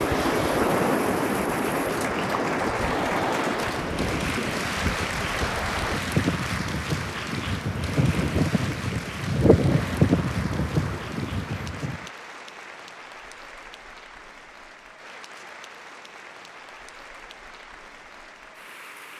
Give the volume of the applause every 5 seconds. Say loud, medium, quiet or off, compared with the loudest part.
loud, loud, medium, medium.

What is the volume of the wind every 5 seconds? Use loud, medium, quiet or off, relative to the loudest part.
loud, loud, loud, off.